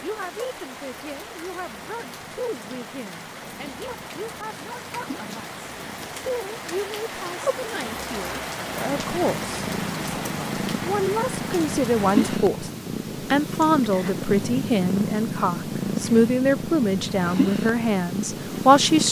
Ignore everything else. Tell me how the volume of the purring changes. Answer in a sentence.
The volume of the purring goes up.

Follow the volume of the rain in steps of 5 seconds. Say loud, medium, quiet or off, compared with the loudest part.
medium, loud, loud, off.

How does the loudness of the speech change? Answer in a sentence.
The volume of the speech goes up.